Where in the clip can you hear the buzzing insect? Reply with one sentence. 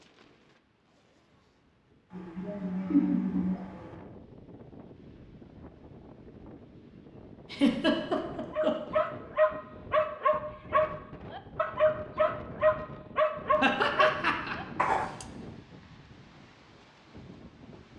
The buzzing insect can't be heard in this clip.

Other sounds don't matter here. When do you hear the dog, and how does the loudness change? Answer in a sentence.
You can hear the dog from 8.5 to 15.2 s, at a steady volume.